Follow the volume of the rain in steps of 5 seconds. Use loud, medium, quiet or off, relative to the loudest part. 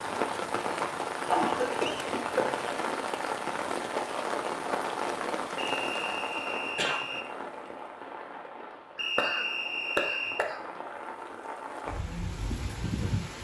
loud, medium, medium.